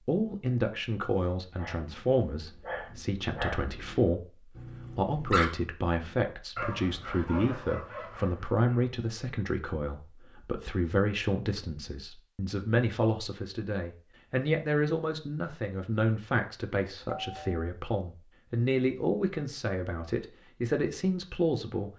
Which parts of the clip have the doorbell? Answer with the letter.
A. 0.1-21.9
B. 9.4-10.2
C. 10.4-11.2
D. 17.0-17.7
D.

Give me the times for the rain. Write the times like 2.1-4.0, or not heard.
not heard.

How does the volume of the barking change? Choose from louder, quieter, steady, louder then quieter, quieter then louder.
louder then quieter.